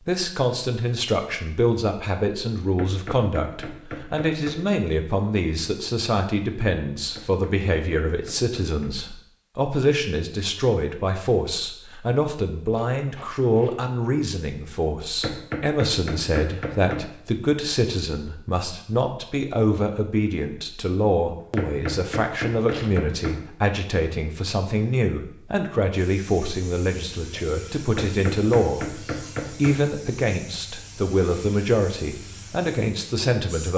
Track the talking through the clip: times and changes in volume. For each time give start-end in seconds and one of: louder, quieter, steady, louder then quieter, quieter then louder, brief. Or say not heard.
0.1-33.7 steady.